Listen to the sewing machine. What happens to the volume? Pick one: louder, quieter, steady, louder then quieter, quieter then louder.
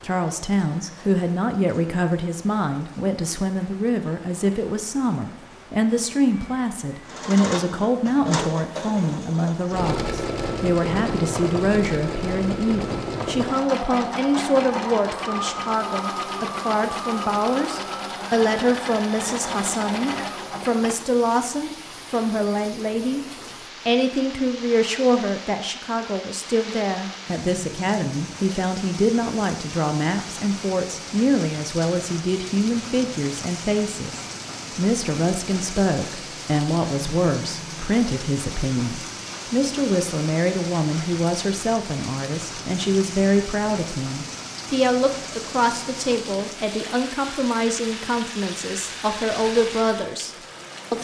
steady.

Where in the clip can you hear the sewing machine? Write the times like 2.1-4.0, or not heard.
7.0-21.1.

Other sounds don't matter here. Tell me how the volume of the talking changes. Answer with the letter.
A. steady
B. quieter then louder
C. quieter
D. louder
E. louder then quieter
A.